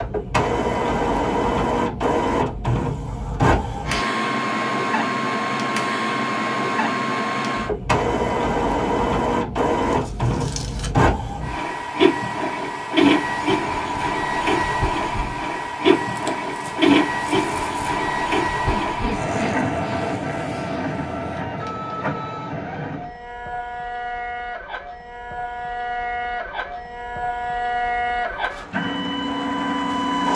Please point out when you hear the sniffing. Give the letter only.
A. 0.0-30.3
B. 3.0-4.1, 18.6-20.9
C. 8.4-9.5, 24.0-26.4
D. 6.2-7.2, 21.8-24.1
B.